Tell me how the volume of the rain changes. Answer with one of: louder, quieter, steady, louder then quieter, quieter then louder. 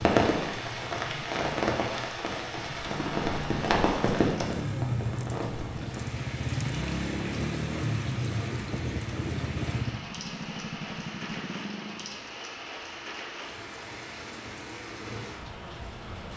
quieter.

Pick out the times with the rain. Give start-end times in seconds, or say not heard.
0.0-16.3.